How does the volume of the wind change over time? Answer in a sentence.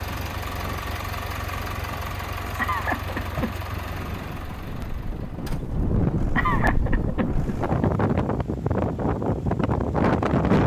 The volume of the wind goes up.